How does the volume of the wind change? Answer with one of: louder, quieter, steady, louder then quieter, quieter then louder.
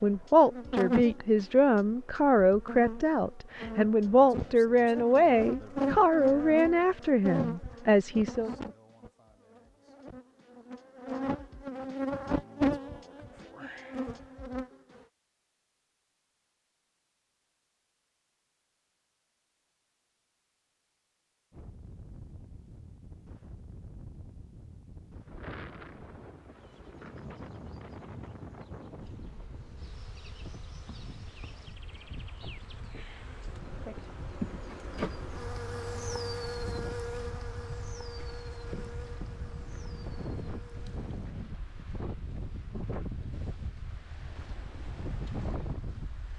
louder.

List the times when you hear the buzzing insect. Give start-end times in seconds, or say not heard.
0.0-15.0, 26.4-41.3.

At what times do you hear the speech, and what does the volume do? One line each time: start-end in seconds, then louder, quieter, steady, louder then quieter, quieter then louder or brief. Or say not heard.
0.0-8.5 steady.